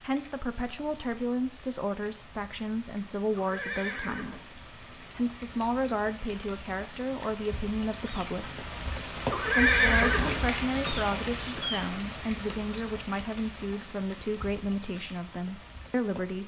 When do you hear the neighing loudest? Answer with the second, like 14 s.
10 s.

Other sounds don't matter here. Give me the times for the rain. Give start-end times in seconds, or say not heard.
0.0-16.4.